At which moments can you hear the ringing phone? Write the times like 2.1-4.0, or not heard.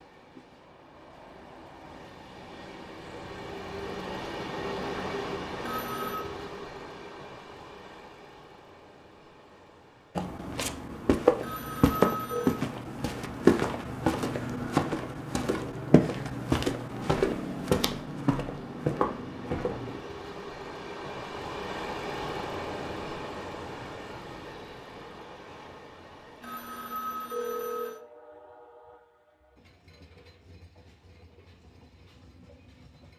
5.6-6.2, 11.4-12.7, 26.4-28.0.